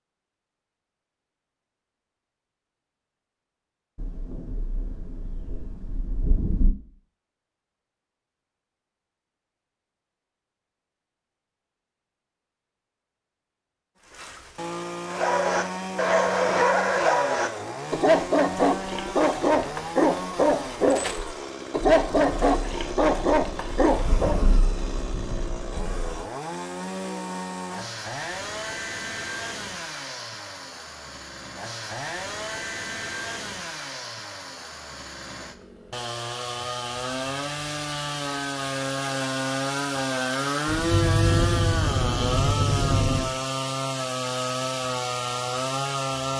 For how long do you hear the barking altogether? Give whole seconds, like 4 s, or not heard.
9 s.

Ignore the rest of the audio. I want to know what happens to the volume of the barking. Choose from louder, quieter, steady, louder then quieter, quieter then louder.
steady.